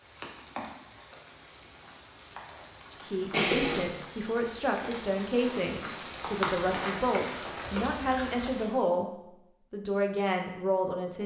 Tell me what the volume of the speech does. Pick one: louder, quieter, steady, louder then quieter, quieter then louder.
steady.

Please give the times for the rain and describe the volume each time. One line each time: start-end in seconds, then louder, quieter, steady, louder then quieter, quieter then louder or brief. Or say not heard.
0.0-8.7 louder.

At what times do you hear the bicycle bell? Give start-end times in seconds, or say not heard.
3.3-4.0, 7.6-8.4.